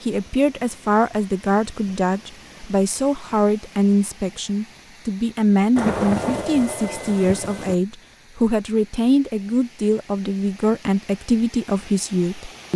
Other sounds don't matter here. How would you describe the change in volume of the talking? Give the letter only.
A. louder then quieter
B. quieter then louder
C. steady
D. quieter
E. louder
C.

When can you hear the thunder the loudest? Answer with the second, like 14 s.
6 s.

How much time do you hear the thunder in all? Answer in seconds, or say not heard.
2 s.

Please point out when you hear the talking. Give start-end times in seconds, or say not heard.
0.0-12.7.